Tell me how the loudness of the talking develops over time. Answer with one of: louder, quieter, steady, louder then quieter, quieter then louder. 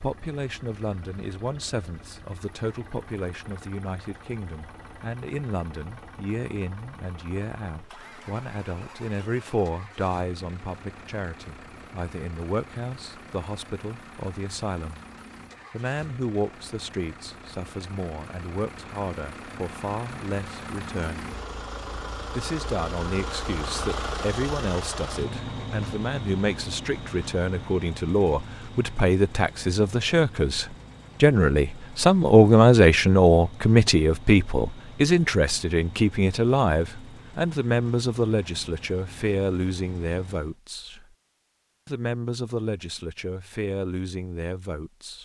louder then quieter.